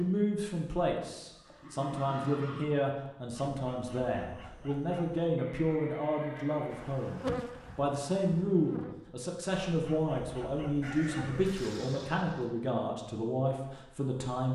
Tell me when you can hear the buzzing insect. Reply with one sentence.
The buzzing insect can be heard from 6.7 to 9.1 s.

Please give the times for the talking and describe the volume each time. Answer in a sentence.
The talking can be heard from 0.0 to 14.5 s, at a steady volume.